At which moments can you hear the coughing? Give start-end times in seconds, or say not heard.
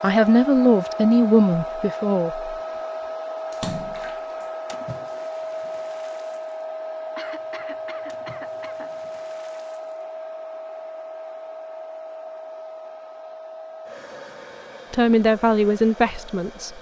7.2-9.0.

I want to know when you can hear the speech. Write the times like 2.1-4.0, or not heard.
0.0-2.5, 14.9-16.7.